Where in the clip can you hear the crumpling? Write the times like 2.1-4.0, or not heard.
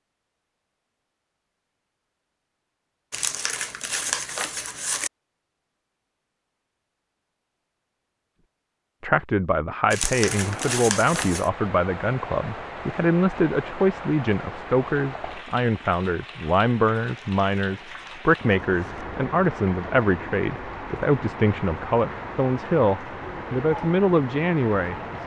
3.1-5.1, 9.9-11.5, 17.1-19.1.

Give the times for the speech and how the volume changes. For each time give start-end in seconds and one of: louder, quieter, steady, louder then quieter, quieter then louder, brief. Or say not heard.
9.0-25.2 steady.